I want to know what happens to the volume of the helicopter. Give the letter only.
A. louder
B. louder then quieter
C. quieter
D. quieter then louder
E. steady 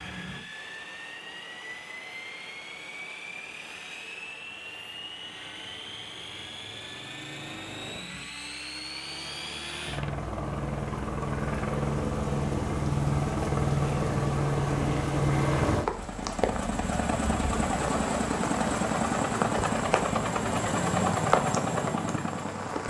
A.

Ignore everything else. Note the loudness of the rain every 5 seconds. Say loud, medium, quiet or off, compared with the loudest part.
quiet, quiet, medium, loud, loud.